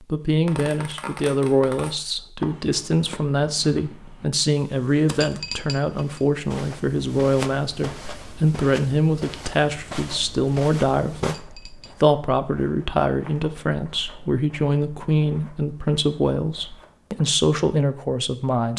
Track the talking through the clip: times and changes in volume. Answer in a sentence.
You can hear the talking from 0.0 to 18.7 s, at a steady volume.